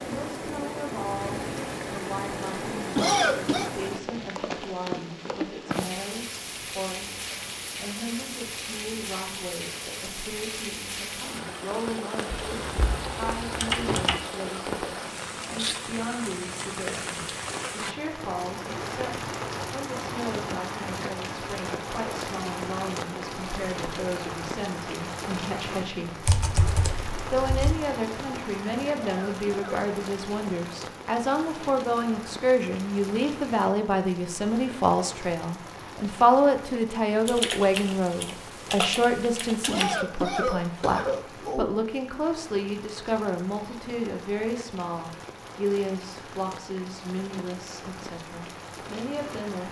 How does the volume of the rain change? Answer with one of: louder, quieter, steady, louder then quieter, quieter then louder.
quieter.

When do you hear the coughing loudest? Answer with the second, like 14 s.
3 s.